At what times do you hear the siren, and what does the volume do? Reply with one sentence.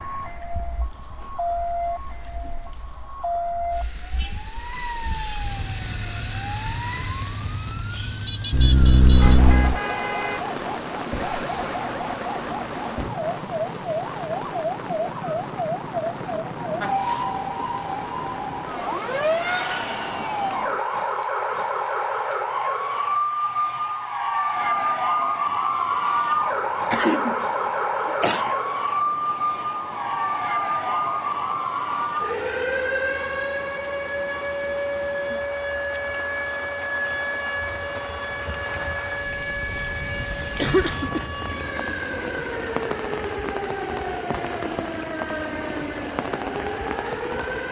The siren can be heard from 0.0 to 47.6 s, getting louder then quieter.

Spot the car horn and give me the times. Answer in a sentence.
The car horn can be heard from 9.2 to 10.4 s.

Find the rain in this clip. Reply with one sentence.
The rain can be heard from 0.0 to 47.6 s.